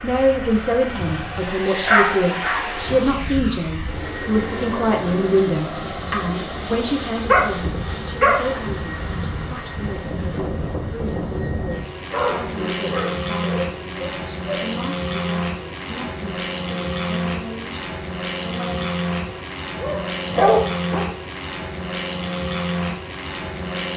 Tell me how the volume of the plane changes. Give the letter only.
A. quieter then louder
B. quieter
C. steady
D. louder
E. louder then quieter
C.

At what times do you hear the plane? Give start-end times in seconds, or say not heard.
0.0-23.9.